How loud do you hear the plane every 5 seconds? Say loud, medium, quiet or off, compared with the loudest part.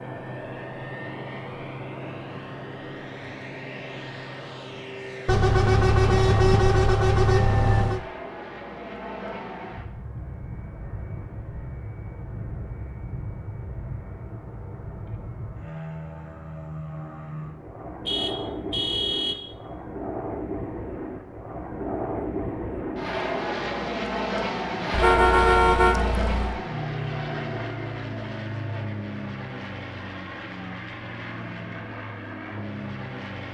medium, medium, medium, medium, loud, loud, medium.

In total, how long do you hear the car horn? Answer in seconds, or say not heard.
6 s.